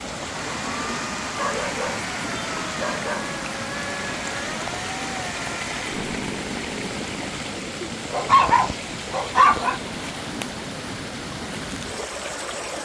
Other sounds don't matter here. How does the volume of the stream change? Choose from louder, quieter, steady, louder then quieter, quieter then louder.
steady.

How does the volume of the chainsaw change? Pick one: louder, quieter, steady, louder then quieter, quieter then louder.
steady.